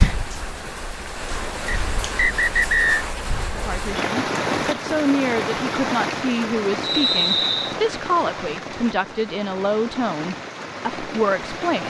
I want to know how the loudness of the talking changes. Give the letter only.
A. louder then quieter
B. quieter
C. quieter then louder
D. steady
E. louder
D.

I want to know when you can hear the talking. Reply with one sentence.
The talking can be heard from 3.5 to 11.8 s.